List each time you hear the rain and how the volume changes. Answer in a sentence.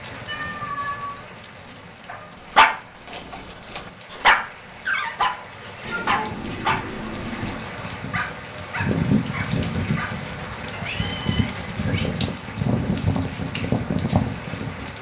The rain can be heard from 0.0 to 14.9 s, getting louder.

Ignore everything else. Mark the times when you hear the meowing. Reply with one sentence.
You can hear the meowing from 0.2 to 2.3 s, from 5.8 to 7.7 s and from 10.7 to 12.1 s.